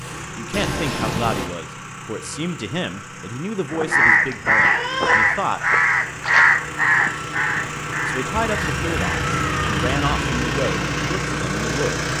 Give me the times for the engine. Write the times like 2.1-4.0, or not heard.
0.0-12.1.